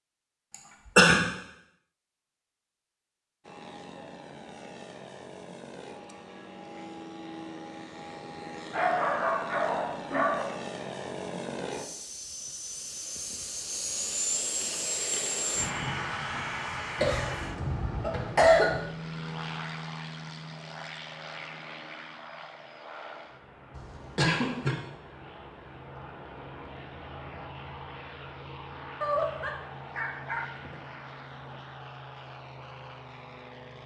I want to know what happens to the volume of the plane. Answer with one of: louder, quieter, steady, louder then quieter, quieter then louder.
louder then quieter.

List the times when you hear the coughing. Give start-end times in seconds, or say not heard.
0.5-1.2, 16.9-18.8, 23.7-24.8.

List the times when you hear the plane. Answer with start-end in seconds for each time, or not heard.
3.4-33.8.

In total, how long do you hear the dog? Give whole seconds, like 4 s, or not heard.
4 s.